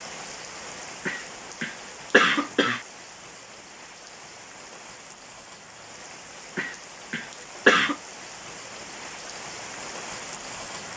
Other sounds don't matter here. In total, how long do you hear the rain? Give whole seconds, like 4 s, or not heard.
11 s.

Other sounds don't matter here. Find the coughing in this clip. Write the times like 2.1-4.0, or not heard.
1.1-2.8, 6.5-8.0.